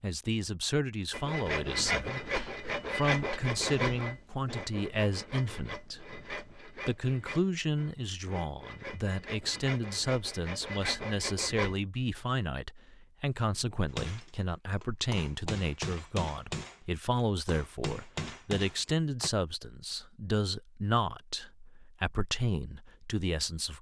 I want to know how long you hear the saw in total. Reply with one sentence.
The saw can be heard for 11 seconds in total.